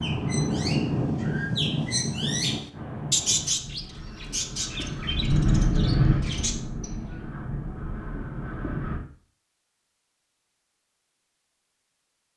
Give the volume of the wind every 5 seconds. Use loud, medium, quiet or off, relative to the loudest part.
loud, loud, off.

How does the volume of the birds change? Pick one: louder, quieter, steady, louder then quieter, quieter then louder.
louder then quieter.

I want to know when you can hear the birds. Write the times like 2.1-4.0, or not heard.
0.0-7.2.